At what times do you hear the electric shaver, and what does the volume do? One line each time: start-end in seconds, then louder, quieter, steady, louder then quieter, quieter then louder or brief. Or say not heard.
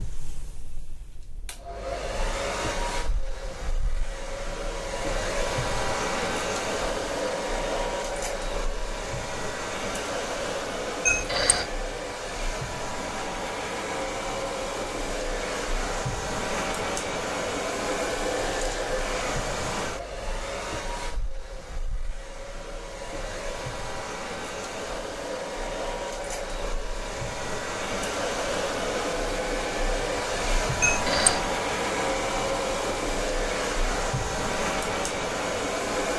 not heard.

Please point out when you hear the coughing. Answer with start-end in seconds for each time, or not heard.
11.1-11.7, 30.8-31.4.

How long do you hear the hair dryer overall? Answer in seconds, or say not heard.
36 s.